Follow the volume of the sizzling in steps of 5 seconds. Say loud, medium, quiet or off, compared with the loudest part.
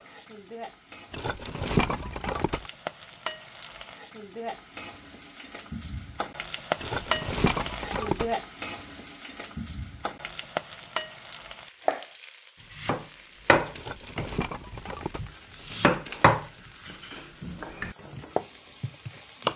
medium, loud, medium, quiet.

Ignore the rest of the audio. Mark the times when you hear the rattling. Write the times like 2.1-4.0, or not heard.
1.1-2.7, 6.8-8.3, 13.8-15.3.